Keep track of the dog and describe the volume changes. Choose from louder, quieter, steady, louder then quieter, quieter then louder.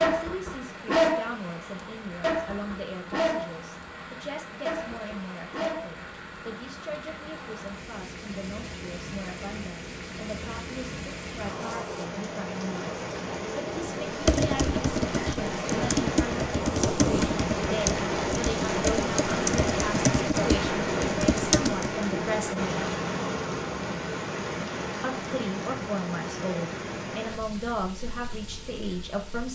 quieter then louder.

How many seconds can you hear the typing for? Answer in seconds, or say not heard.
8 s.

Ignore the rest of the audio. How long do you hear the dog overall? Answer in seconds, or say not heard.
6 s.